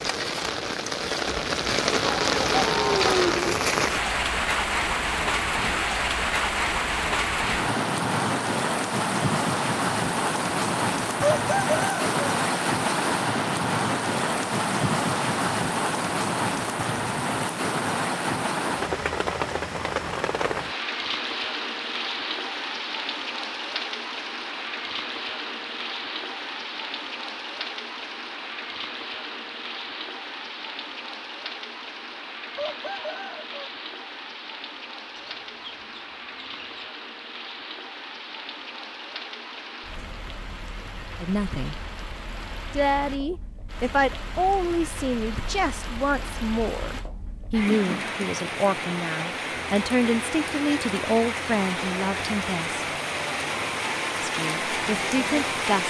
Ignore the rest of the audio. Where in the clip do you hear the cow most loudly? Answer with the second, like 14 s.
3 s.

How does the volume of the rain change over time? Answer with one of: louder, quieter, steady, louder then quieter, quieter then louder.
quieter then louder.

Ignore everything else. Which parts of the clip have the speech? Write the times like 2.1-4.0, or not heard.
41.2-41.8, 42.8-52.8, 54.2-55.8.